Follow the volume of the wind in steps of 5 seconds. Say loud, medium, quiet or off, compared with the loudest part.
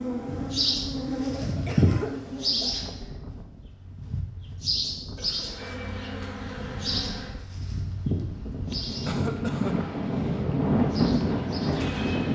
quiet, medium, loud.